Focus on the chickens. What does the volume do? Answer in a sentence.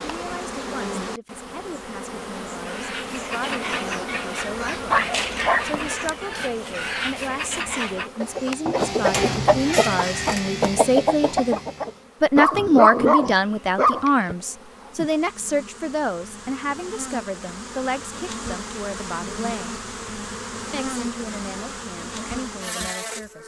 The loudness of the chickens goes up.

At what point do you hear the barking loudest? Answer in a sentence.
The volume of the barking peaks at 13 seconds.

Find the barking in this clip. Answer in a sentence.
The barking can be heard from 4.4 to 5.8 s and from 12.3 to 14.3 s.